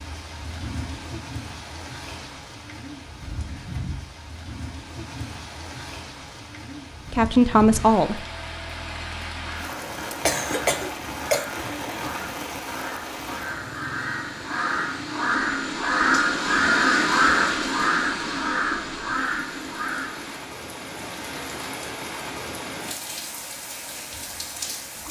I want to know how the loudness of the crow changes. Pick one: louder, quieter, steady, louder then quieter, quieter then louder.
louder then quieter.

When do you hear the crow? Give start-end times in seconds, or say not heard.
9.4-20.4.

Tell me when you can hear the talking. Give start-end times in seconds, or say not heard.
7.1-8.2.